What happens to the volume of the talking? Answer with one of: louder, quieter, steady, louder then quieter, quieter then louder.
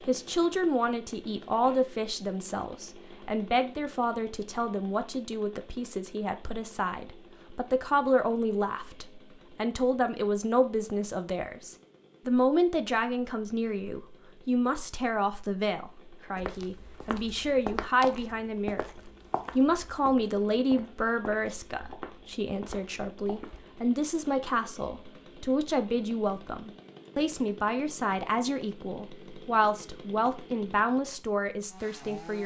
steady.